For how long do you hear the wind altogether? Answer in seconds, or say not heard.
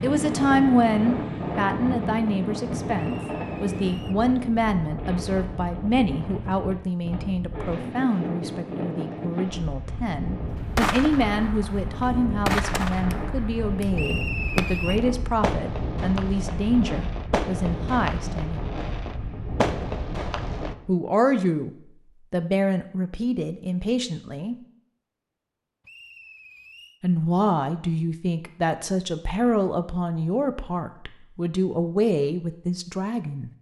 21 s.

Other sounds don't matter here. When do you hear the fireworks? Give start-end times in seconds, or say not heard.
10.8-20.8.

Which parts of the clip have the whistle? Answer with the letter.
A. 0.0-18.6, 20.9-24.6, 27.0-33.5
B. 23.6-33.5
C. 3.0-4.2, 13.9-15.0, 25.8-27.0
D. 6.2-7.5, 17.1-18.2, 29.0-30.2
C.